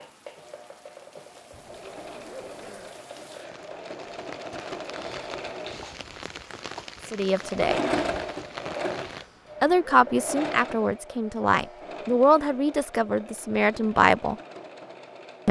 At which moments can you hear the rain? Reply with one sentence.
You can hear the rain from 0.0 to 9.3 s.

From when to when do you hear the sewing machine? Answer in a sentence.
You can hear the sewing machine from 0.0 to 15.4 s.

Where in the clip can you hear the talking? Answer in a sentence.
The talking can be heard from 7.1 to 7.8 s and from 9.6 to 14.3 s.